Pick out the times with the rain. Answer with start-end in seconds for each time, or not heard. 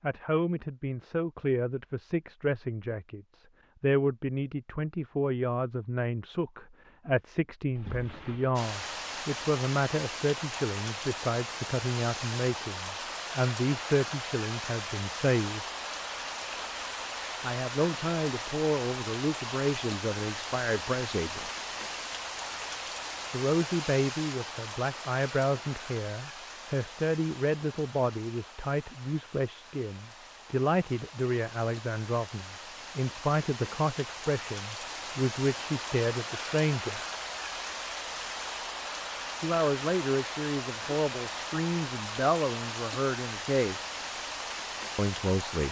8.6-45.6.